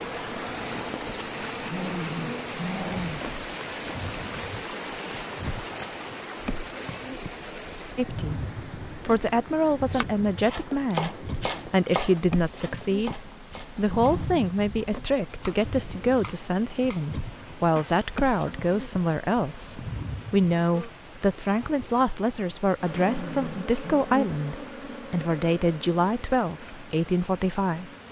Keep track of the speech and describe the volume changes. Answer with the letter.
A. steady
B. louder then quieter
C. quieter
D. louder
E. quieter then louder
A.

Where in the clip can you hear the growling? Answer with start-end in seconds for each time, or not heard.
1.6-3.2, 13.8-14.4, 22.9-24.1.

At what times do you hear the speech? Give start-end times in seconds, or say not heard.
8.0-27.9.